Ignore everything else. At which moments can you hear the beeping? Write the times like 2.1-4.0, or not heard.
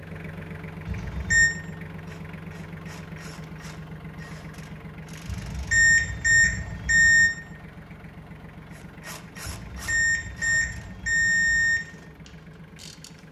0.8-1.5, 5.2-7.3, 9.4-11.8.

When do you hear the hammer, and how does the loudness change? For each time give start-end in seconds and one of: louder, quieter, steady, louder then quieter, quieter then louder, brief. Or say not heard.
not heard.